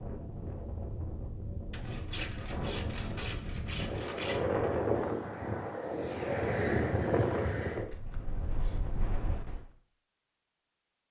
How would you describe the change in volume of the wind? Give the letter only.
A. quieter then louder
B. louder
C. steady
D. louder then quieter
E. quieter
D.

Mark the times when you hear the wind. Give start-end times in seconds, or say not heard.
0.0-9.7.